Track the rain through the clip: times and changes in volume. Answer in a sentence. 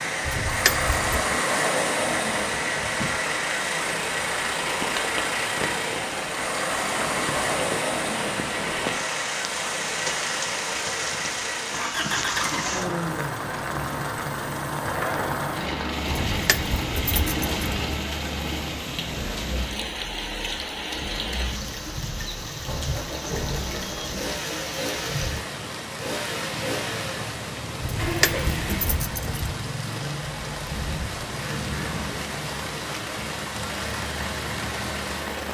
The rain can be heard from 0.0 to 35.4 s, at a steady volume.